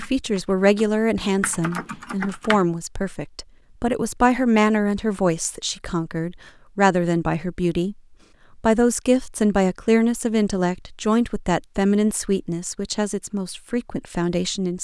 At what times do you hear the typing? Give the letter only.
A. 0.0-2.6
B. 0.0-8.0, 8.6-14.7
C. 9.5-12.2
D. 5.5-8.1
A.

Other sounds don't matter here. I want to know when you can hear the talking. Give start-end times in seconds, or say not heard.
0.0-8.0, 8.6-14.7.